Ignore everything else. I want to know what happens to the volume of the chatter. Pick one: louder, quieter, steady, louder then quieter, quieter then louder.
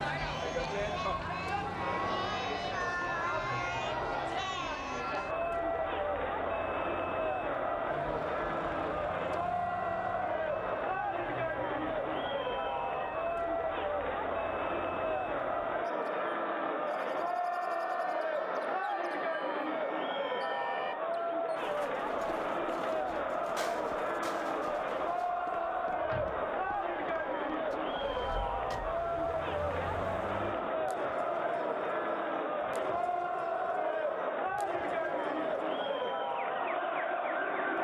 steady.